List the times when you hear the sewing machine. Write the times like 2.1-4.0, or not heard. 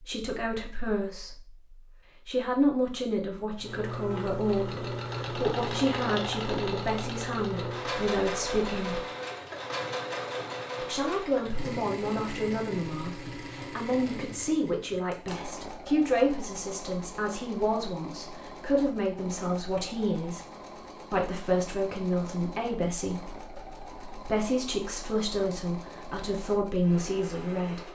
3.5-27.8.